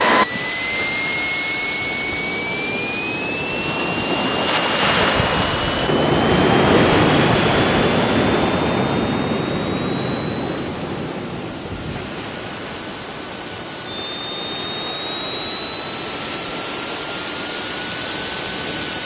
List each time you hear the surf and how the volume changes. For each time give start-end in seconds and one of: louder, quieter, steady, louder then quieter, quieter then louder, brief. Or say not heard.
0.1-19.0 louder then quieter.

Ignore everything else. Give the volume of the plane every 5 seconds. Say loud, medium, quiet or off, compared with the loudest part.
loud, medium, medium, loud.